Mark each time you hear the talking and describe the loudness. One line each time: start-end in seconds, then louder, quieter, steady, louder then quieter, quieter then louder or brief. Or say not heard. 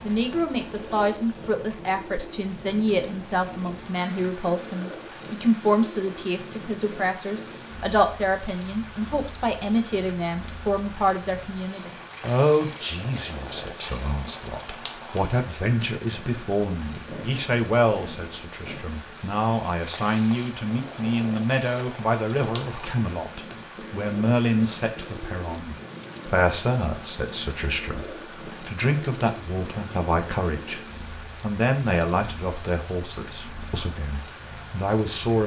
0.0-35.4 steady.